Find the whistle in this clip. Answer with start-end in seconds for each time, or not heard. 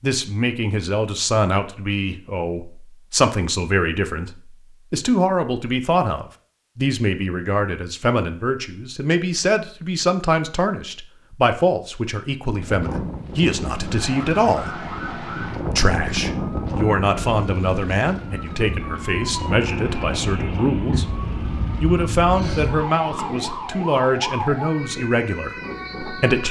not heard.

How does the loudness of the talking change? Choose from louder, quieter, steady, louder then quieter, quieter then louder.
steady.